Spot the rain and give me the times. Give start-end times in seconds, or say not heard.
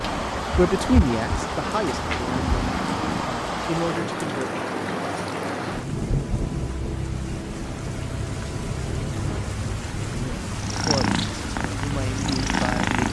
0.0-13.0.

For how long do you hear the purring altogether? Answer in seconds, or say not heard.
6 s.